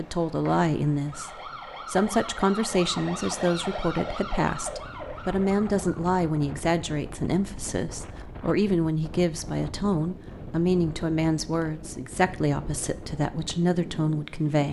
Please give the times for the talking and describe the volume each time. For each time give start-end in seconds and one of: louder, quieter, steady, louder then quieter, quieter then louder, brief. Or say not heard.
0.0-14.6 steady.